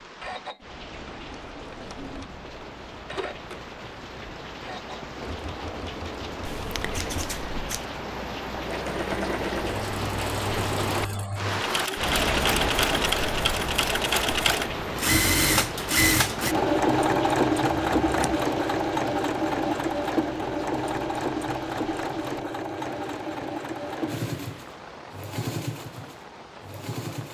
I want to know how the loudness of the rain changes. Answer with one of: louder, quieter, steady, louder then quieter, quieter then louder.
louder then quieter.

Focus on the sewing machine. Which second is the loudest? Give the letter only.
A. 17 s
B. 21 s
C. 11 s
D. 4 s
A.